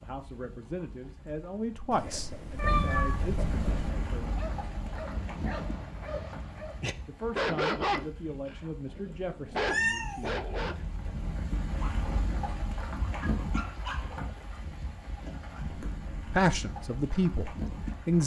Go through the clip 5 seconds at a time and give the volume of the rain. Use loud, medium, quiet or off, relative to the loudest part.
loud, medium, loud, loud.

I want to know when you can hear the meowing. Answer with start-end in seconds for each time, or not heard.
1.9-3.6, 9.7-10.3.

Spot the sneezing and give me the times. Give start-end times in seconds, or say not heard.
not heard.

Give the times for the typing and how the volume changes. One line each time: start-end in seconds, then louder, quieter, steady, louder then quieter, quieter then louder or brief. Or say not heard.
not heard.